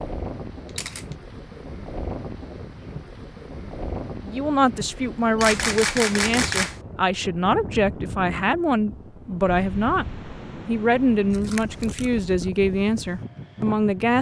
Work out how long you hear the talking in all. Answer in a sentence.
You can hear the talking for 9 seconds altogether.